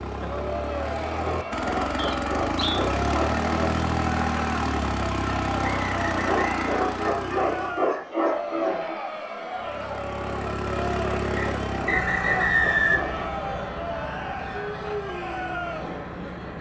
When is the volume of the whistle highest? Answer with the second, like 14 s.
13 s.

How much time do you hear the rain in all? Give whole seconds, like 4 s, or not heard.
not heard.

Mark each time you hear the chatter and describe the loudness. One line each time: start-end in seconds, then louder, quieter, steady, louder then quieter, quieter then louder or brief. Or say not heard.
0.2-16.5 steady.